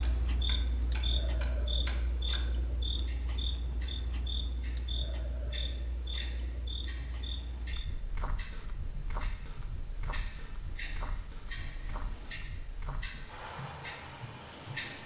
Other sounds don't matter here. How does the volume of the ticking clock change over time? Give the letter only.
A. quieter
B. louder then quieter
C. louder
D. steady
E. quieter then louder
C.